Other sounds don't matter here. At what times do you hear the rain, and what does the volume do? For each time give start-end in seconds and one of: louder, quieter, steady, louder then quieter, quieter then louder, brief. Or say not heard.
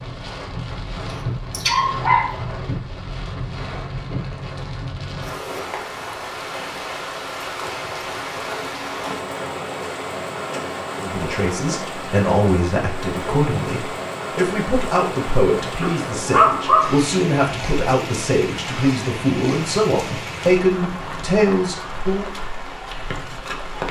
0.0-23.8 steady.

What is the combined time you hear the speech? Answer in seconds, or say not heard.
11 s.